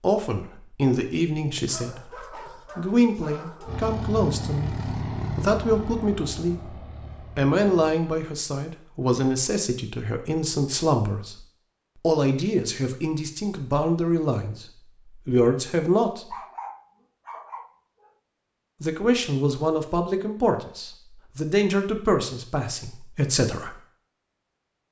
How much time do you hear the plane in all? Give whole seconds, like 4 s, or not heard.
4 s.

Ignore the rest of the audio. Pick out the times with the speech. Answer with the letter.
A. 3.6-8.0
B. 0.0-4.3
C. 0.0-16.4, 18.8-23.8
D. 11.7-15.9
C.